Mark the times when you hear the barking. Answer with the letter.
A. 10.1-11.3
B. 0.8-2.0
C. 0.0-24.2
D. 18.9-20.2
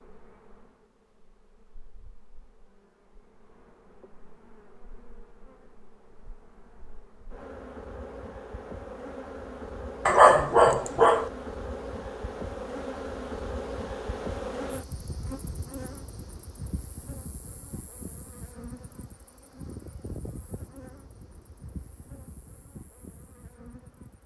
A.